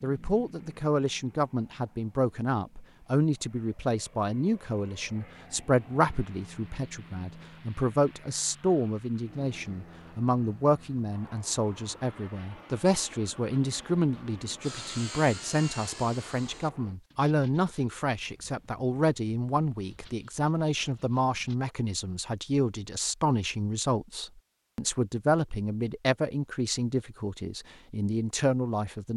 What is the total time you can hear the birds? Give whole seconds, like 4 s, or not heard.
not heard.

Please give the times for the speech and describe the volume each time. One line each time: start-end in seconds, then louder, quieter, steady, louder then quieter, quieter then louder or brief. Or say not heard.
0.0-29.1 steady.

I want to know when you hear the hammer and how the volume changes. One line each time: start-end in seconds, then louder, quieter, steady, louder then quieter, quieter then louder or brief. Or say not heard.
not heard.